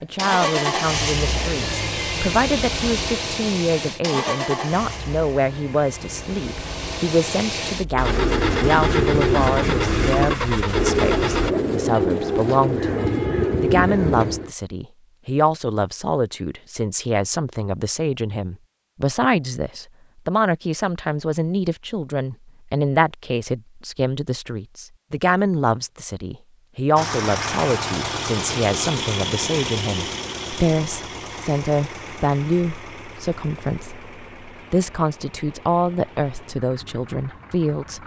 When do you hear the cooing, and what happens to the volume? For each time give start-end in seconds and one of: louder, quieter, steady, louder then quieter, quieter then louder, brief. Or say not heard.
8.0-14.5 steady.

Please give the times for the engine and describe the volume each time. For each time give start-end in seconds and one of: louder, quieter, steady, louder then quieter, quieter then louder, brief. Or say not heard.
0.0-11.6 quieter then louder
26.9-38.0 quieter.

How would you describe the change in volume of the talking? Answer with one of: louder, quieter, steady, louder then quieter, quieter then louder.
steady.